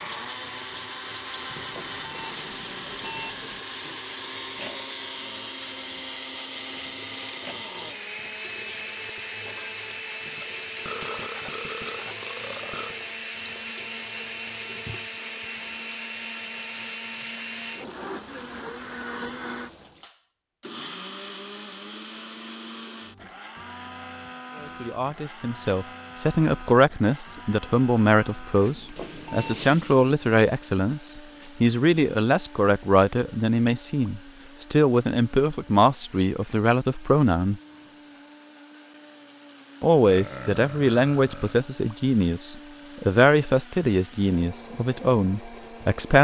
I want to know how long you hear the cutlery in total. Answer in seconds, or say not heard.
not heard.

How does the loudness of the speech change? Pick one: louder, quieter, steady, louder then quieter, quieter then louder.
steady.